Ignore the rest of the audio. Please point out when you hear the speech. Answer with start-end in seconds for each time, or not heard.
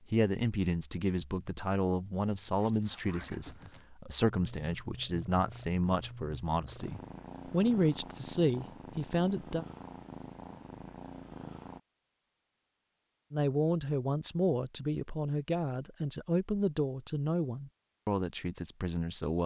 0.1-9.7, 13.3-19.4.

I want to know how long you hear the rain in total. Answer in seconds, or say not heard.
not heard.